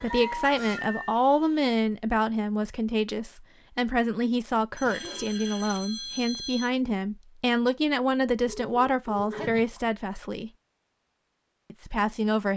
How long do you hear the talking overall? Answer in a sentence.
The talking can be heard for 11 seconds in total.